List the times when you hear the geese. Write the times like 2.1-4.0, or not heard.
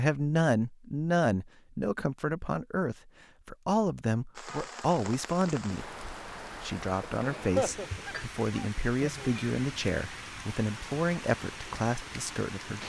7.1-9.3.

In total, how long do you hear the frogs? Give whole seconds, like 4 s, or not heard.
not heard.